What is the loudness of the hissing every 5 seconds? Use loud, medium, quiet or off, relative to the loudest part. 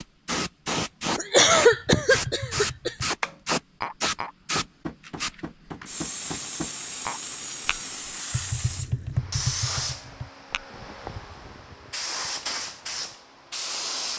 loud, medium, medium.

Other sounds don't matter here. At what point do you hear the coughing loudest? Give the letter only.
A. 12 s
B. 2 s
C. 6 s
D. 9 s
B.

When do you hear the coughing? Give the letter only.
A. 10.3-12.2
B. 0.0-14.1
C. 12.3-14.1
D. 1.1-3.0
D.